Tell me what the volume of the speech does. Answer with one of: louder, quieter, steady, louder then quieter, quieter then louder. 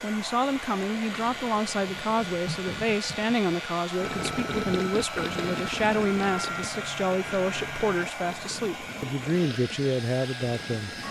steady.